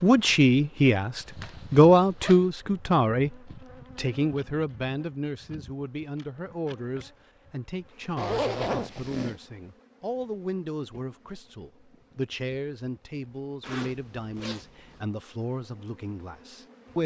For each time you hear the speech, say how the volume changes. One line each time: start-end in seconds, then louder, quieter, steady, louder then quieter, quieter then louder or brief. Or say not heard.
0.0-17.0 quieter.